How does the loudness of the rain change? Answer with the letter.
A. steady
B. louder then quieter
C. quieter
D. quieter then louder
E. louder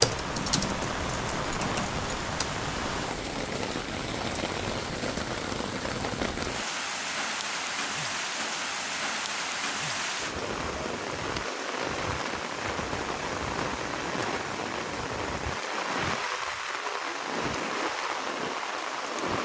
A.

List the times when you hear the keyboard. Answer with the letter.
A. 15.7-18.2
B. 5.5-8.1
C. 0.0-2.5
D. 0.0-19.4
C.